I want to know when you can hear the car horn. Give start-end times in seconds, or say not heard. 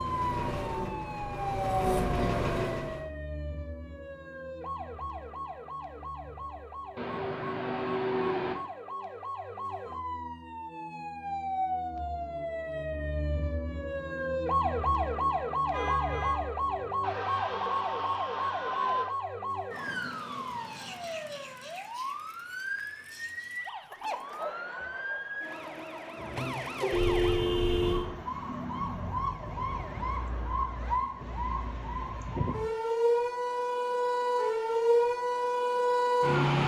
7.0-8.6, 15.7-16.4, 26.9-28.1.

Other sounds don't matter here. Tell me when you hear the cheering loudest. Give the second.
19 s.